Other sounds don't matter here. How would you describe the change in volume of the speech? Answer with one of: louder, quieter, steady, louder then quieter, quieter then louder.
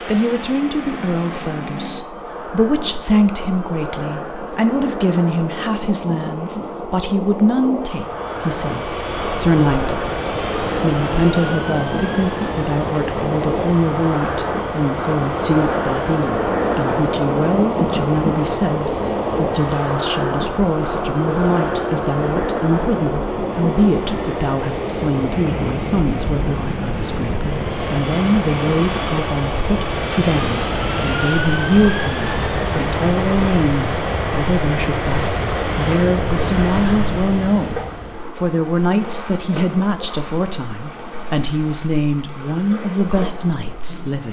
steady.